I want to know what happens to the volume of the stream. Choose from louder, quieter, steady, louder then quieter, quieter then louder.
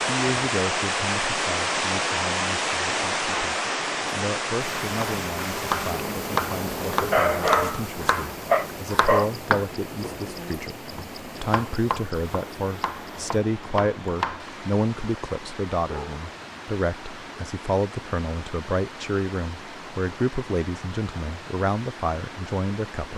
quieter.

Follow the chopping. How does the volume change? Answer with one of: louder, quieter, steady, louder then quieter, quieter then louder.
quieter.